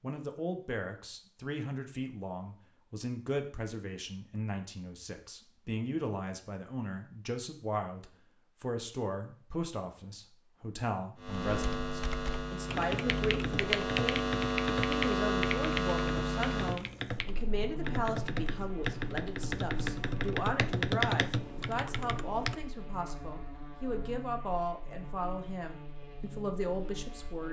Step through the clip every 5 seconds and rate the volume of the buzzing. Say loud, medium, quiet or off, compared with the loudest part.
off, off, loud, loud, quiet, quiet.